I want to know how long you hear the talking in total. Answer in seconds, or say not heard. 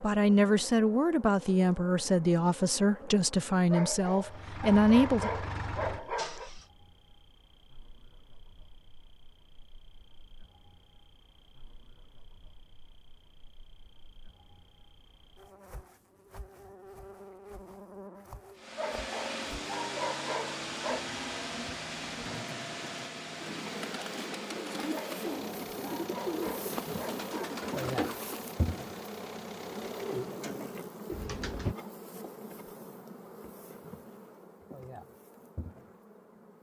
5 s.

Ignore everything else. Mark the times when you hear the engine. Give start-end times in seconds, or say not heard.
4.2-6.7, 18.6-30.3.